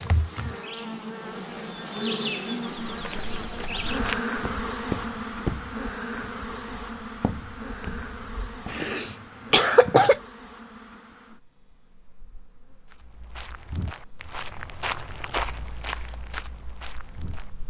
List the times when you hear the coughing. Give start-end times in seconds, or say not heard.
8.7-10.2.